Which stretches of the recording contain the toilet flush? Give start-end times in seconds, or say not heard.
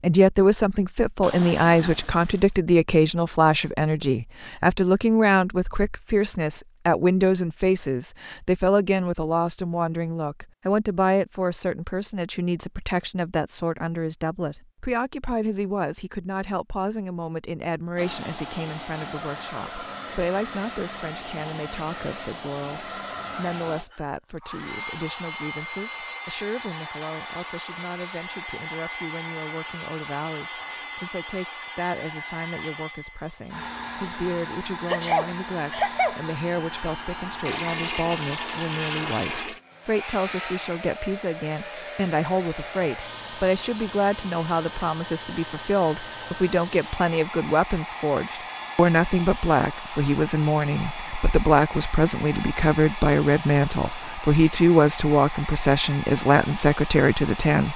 1.2-2.5, 37.5-39.6.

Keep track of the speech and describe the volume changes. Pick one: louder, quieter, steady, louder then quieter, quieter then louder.
quieter then louder.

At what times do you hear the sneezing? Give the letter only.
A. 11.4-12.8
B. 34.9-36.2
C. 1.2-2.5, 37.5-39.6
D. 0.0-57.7
B.